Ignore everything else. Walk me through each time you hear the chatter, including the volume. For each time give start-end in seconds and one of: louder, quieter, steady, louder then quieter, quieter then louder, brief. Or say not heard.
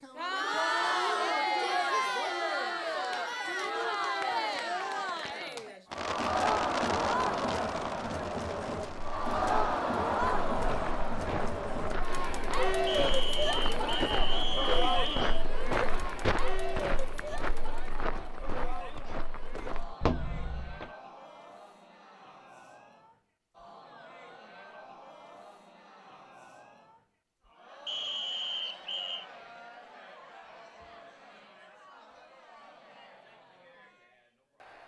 0.0-34.8 quieter.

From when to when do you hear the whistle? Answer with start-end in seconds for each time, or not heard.
12.8-15.4, 27.9-29.2.